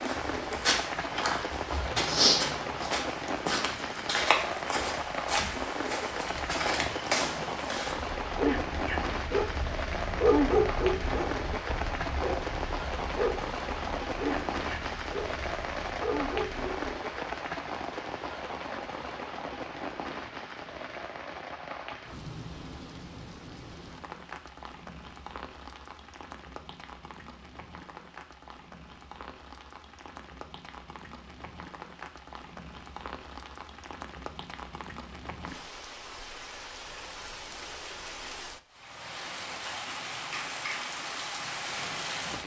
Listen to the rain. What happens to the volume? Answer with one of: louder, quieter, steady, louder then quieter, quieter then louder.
quieter then louder.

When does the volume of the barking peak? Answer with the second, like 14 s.
10 s.